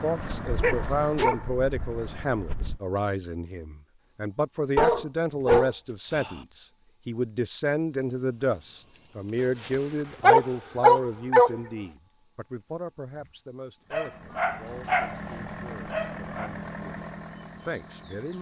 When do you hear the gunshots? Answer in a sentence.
The gunshots can't be heard in this clip.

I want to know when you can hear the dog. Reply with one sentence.
The dog can be heard from 0.1 to 2.8 s, from 4.8 to 6.4 s, from 9.6 to 11.6 s, from 13.9 to 15.2 s and from 15.8 to 16.5 s.